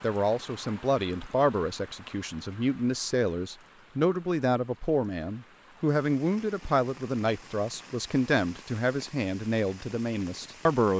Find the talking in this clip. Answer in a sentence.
The talking can be heard from 0.0 to 10.9 s.